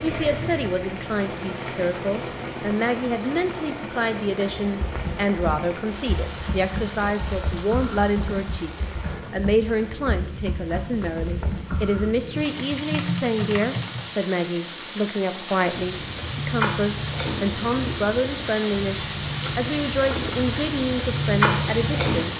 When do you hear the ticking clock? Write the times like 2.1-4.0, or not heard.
not heard.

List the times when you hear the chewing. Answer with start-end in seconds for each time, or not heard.
15.7-22.3.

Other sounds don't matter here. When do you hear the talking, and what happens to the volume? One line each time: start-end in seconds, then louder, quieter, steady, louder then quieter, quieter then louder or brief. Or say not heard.
0.0-22.3 steady.